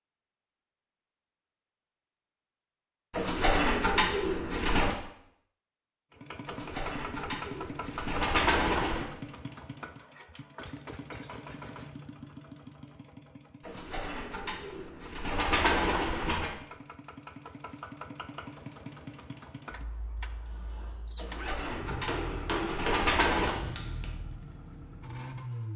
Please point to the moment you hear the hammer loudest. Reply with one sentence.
The volume of the hammer peaks at 23 seconds.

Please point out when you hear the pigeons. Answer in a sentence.
You can hear the pigeons from 3.1 to 5.0 s, from 6.5 to 9.1 s, from 13.7 to 16.5 s and from 21.1 to 23.6 s.